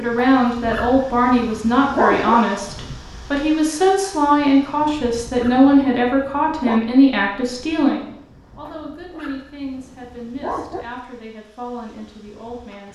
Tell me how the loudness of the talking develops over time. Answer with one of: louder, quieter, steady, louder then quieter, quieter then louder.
quieter.